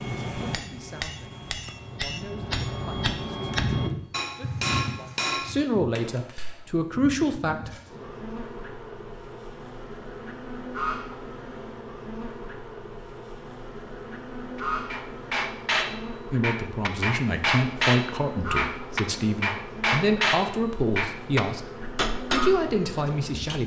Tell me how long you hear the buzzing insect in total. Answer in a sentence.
You can hear the buzzing insect for 20 seconds altogether.